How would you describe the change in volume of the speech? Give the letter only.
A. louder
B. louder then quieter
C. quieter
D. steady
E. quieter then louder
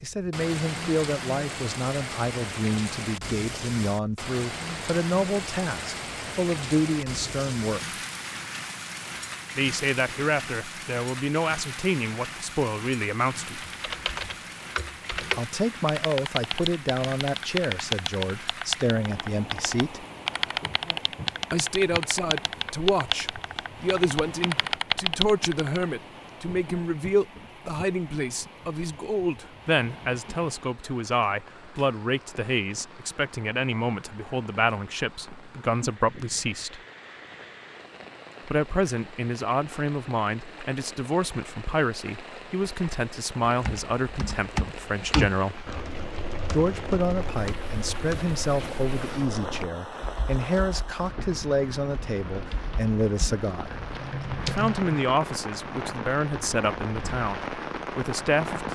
D.